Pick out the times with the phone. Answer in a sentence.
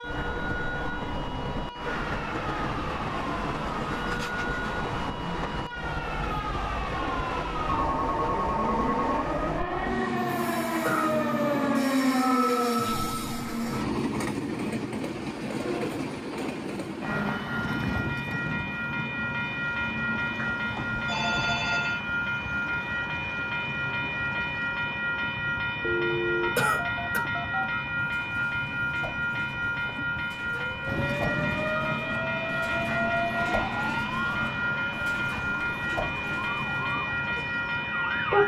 You can hear the phone from 7.8 to 9.2 s, from 20.4 to 22.0 s and from 25.8 to 27.9 s.